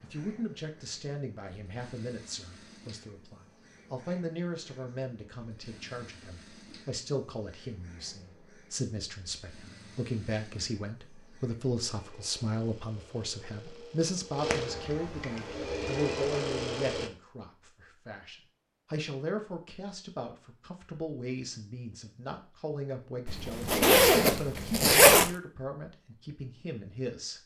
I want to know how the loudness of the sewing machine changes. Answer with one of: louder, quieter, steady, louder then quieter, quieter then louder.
louder.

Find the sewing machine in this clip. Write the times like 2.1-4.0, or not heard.
0.0-17.1.